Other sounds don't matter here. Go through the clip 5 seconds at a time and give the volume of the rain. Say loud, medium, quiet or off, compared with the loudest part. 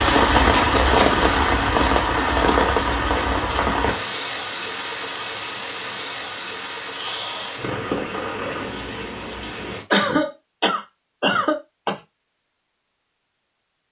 loud, medium, off.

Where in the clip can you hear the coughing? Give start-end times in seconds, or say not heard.
0.6-1.2, 7.0-7.6, 9.9-12.0.